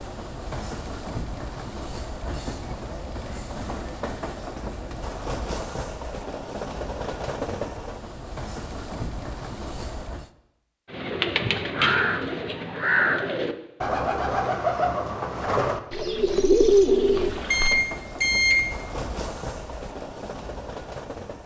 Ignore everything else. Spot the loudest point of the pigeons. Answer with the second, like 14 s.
17 s.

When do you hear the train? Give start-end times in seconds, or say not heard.
0.0-10.3, 17.1-21.4.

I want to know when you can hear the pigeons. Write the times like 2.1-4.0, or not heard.
10.9-17.7.